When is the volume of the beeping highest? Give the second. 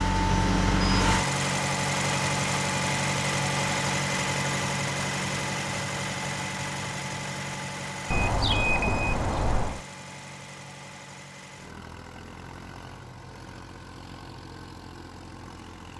9 s.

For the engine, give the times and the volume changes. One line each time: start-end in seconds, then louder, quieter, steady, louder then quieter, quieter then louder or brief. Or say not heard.
0.0-15.9 quieter.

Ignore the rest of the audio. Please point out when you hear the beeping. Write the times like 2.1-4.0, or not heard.
0.2-1.1, 8.1-9.8.